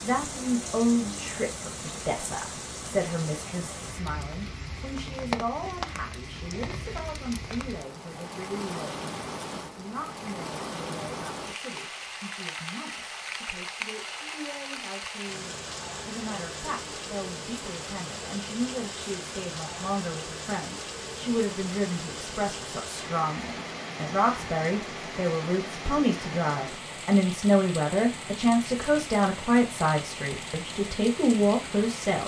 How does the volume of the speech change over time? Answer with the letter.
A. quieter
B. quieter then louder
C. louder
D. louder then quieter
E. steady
B.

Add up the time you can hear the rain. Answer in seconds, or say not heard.
32 s.